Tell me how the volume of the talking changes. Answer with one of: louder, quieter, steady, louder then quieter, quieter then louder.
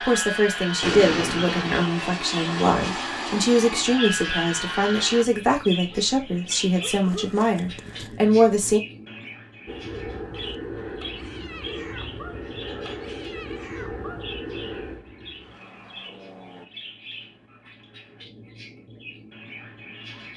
steady.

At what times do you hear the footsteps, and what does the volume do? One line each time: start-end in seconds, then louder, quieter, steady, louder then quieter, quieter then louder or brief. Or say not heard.
not heard.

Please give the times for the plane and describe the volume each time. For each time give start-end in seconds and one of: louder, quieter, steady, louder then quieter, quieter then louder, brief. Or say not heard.
0.0-5.2 steady
9.7-16.7 quieter.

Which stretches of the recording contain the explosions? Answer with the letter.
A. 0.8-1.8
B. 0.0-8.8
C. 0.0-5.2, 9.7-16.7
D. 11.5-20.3
A.